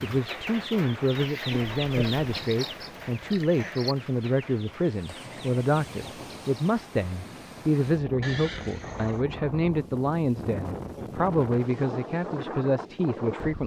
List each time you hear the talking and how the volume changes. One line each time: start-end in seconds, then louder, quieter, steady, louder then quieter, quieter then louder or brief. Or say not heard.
0.0-13.6 steady.